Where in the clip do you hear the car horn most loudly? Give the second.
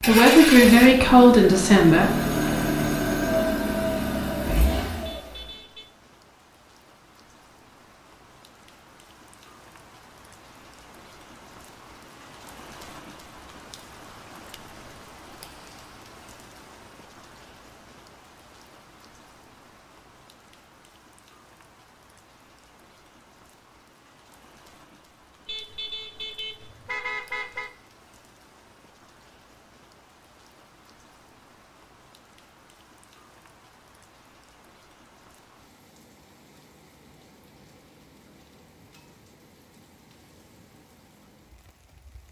27 s.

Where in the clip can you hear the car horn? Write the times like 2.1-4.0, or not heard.
5.0-5.9, 25.4-27.7.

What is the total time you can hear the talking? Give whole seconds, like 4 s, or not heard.
2 s.